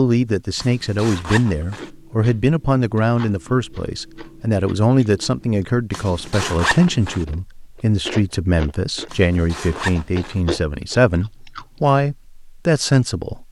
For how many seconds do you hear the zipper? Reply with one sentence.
The zipper can be heard for 4 seconds in total.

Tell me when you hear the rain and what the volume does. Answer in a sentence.
You can't hear the rain here.